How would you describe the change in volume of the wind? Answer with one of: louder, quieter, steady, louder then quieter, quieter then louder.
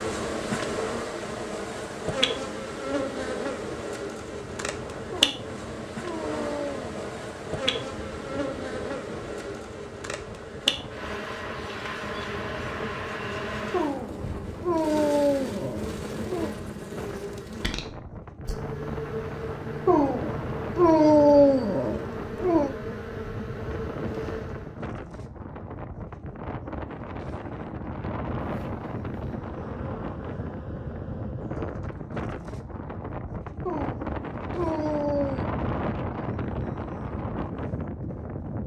louder.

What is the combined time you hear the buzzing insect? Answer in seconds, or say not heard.
28 s.